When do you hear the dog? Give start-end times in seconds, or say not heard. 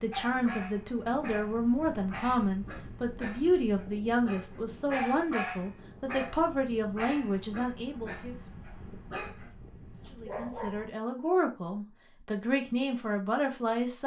0.1-10.8.